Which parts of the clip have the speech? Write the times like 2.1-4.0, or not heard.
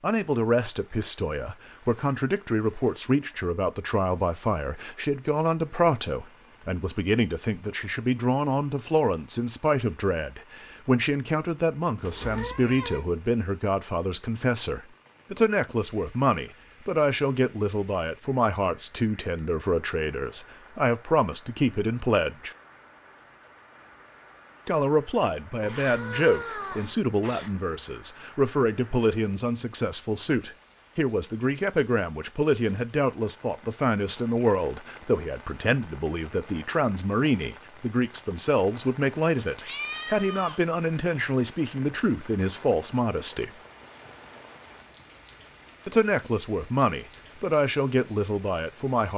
0.0-22.6, 24.6-43.5, 45.9-49.1.